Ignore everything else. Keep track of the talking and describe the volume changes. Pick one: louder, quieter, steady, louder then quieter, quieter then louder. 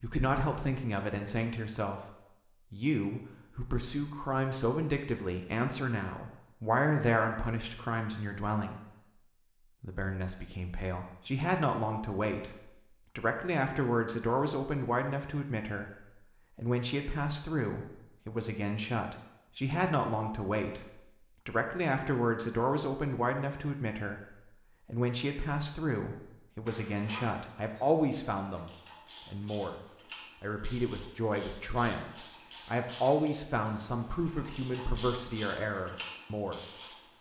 steady.